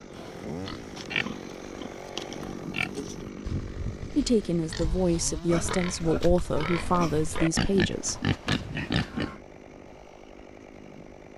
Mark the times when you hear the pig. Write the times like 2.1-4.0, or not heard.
0.1-9.3.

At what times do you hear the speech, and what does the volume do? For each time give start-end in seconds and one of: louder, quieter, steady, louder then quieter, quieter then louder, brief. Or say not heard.
4.2-8.2 steady.